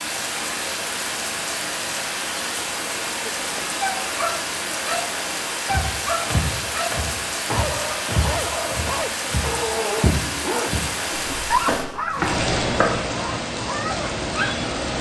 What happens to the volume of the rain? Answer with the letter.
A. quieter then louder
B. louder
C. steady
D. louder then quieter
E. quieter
C.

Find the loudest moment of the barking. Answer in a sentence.
The loudest moment of the barking is at 12 seconds.